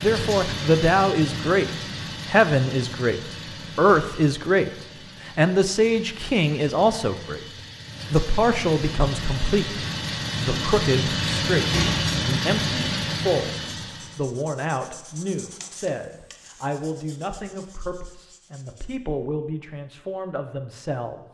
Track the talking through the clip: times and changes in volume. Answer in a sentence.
You can hear the talking from 0.0 to 7.4 s, at a steady volume; and from 8.1 to 21.2 s, getting quieter.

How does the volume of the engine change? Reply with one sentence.
The loudness of the engine goes down, then up.